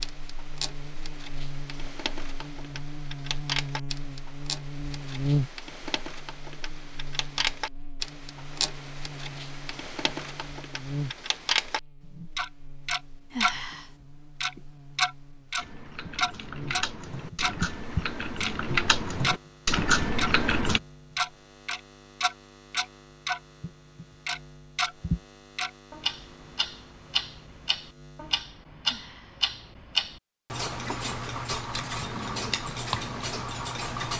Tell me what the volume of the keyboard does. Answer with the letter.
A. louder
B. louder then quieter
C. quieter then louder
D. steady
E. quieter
A.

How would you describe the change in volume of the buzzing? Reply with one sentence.
The loudness of the buzzing goes down.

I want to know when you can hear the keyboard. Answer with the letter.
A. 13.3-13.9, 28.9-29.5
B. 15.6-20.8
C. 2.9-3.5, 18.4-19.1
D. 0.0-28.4
B.